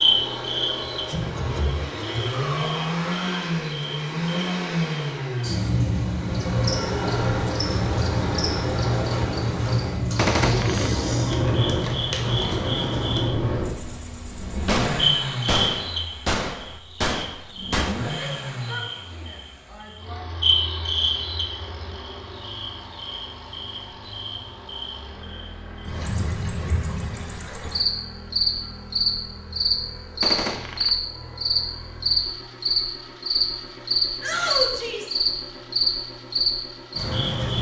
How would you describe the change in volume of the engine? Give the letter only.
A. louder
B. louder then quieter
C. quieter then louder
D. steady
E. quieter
E.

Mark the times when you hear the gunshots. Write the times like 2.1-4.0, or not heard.
10.2-10.9, 14.7-18.1, 30.2-30.9.